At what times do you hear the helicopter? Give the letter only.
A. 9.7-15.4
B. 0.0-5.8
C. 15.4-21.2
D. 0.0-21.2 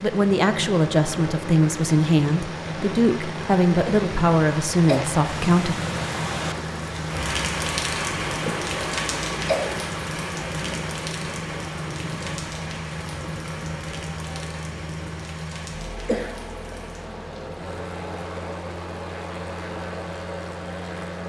D.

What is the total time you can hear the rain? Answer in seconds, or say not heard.
21 s.